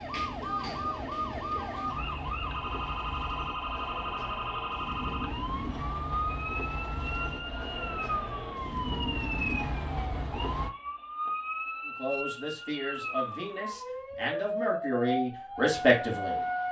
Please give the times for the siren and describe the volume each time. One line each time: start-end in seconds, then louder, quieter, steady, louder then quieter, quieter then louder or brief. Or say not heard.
0.0-16.6 steady.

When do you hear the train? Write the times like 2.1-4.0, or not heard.
0.0-10.7.